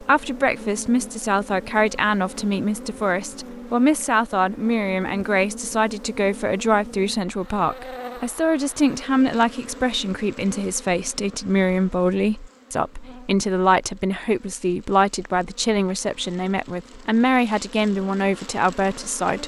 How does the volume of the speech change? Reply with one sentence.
The loudness of the speech stays about the same.